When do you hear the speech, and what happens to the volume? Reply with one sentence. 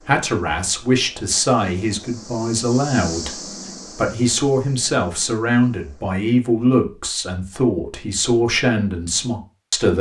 The speech can be heard from 0.1 to 9.9 s, at a steady volume.